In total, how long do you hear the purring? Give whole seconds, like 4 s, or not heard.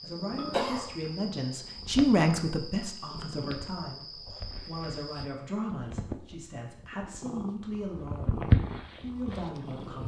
10 s.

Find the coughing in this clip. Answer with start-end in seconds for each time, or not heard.
0.3-0.9.